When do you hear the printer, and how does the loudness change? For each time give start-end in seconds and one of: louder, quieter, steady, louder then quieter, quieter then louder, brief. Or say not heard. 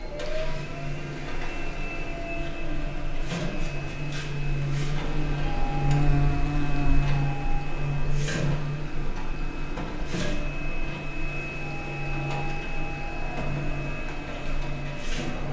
0.0-15.4 steady.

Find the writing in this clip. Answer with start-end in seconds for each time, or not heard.
not heard.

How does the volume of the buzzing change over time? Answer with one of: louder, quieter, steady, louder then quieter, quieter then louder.
louder then quieter.